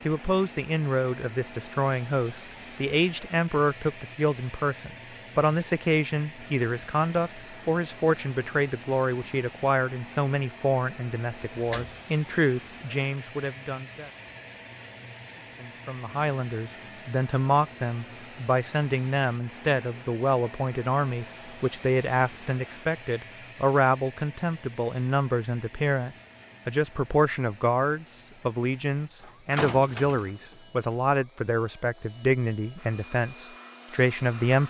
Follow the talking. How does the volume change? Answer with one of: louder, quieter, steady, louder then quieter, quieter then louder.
steady.